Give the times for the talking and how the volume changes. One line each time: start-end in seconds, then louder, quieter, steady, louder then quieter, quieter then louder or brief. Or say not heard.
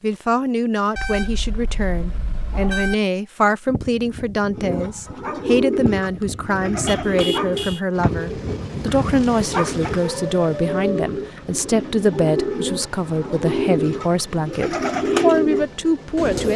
0.0-16.5 steady.